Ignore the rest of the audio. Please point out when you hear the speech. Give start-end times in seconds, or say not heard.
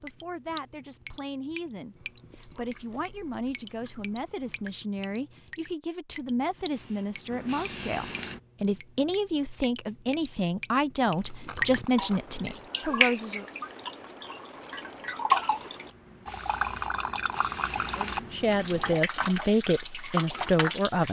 0.0-13.4, 17.9-21.0.